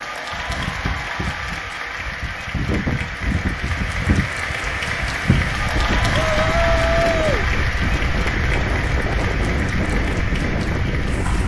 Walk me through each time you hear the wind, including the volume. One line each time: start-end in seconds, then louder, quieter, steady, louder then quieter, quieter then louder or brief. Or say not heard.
0.0-11.4 louder.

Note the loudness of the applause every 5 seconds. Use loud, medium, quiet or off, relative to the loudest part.
loud, loud, medium.